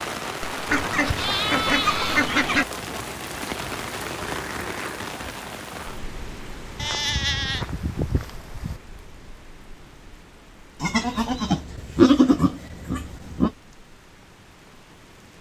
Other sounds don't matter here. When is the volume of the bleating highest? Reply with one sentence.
The volume of the bleating peaks at 12 seconds.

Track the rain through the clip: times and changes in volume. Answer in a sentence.
The rain can be heard from 0.0 to 15.3 s, getting quieter.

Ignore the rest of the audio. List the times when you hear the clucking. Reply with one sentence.
The clucking can be heard from 0.7 to 2.6 s.